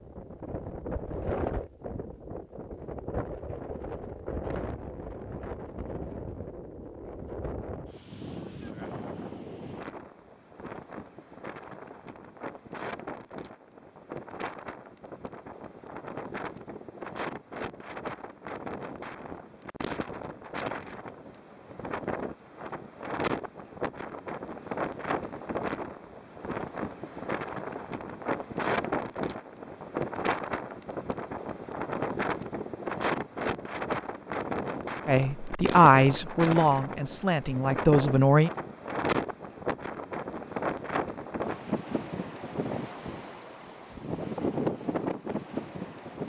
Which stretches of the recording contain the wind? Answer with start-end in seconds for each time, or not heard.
0.0-46.2.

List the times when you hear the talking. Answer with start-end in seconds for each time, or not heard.
35.0-38.5.